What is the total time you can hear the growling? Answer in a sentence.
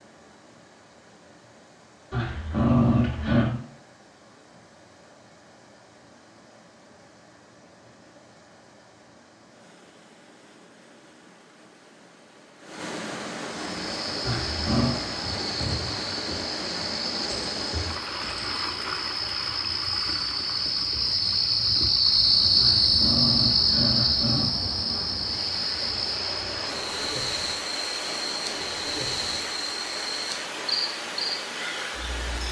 You can hear the growling for 4 seconds altogether.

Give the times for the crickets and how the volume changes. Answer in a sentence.
The crickets can be heard from 13.7 to 32.4 s, getting louder then quieter.